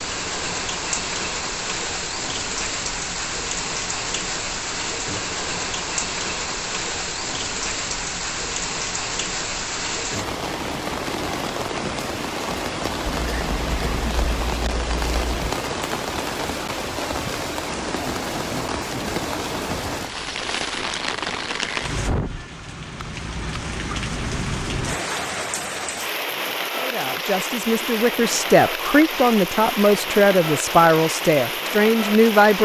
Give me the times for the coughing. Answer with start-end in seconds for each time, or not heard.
13.1-15.5.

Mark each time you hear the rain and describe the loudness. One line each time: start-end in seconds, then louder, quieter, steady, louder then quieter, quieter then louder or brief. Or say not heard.
0.0-32.6 steady.